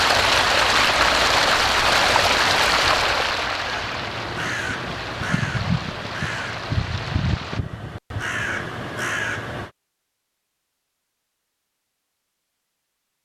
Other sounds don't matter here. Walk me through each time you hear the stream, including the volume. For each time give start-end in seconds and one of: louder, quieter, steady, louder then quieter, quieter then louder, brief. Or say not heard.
0.0-7.6 quieter.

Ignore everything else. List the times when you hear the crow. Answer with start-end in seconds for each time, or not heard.
3.6-9.7.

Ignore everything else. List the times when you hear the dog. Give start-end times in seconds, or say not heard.
not heard.